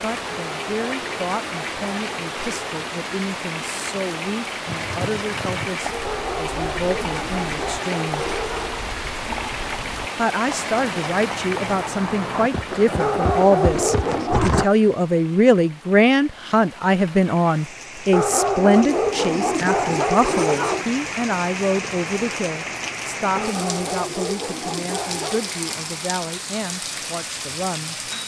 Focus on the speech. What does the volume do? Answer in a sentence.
The loudness of the speech goes up, then down.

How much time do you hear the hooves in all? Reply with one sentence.
You can hear the hooves for 10 seconds altogether.